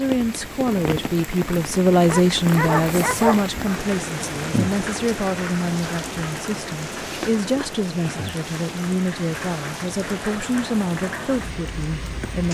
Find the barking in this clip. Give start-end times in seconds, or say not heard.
2.0-3.5.